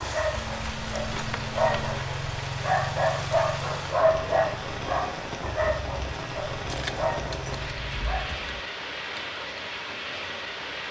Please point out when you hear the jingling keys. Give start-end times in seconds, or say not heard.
0.3-2.0, 6.7-8.6.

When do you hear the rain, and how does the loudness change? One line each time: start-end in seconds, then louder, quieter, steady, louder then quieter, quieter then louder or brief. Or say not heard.
0.0-10.8 steady.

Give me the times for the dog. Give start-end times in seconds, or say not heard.
0.0-8.3.